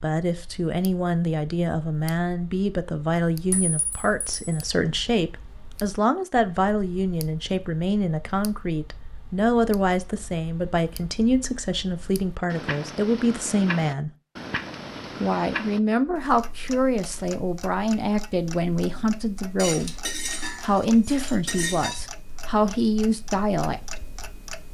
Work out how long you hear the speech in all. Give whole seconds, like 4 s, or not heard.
23 s.